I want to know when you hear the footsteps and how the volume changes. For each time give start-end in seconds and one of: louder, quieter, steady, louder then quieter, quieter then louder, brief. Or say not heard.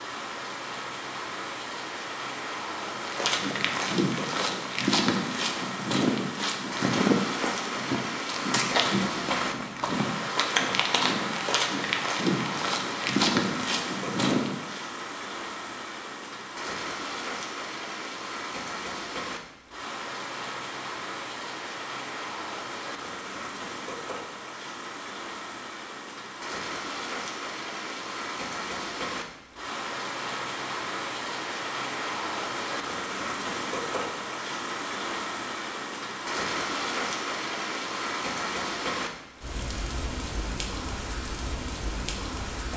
2.9-14.8 steady.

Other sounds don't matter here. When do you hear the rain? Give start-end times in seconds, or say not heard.
0.0-42.7.